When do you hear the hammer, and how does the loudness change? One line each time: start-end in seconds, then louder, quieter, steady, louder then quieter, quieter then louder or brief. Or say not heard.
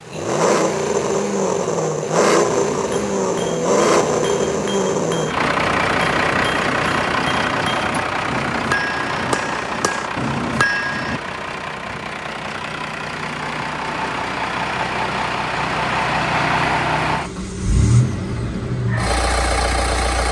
2.4-11.2 louder.